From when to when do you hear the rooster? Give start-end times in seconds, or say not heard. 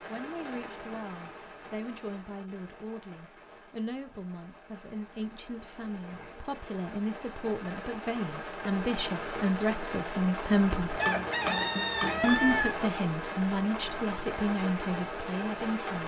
10.8-12.7.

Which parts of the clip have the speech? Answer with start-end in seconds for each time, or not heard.
0.1-11.0, 12.2-16.0.